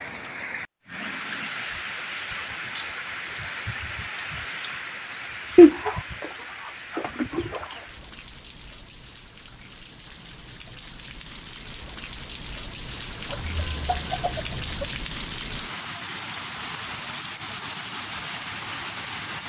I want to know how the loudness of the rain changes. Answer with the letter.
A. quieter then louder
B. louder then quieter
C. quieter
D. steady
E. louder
A.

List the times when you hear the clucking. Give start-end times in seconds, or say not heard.
5.5-6.3, 7.0-7.8, 13.2-14.9.